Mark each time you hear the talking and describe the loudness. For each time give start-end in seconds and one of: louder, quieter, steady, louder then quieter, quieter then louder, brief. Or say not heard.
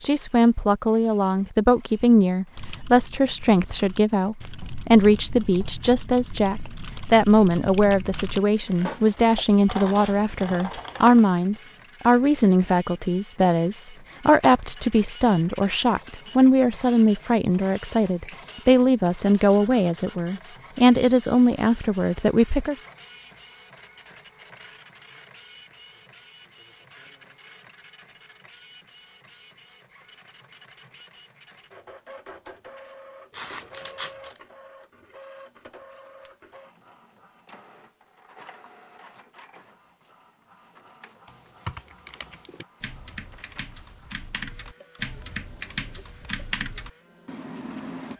0.0-22.8 steady.